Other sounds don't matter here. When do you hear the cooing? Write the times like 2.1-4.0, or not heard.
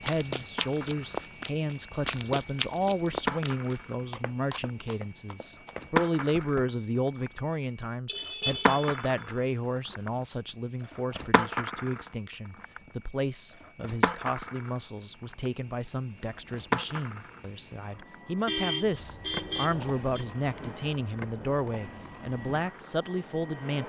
not heard.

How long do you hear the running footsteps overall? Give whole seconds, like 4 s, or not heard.
7 s.